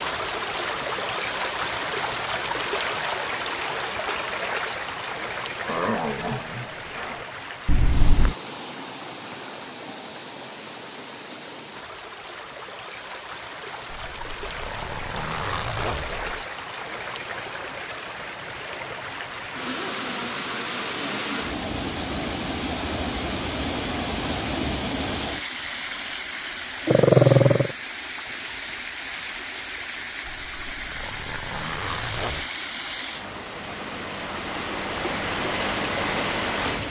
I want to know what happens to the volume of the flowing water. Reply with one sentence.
The loudness of the flowing water goes down, then up.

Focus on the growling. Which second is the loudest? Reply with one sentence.
The volume of the growling peaks at 27 seconds.